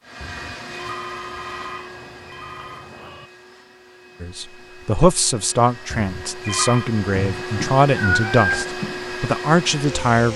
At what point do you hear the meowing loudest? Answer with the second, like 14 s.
8 s.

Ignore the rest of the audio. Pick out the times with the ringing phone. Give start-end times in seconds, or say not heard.
0.2-2.9, 5.9-6.9.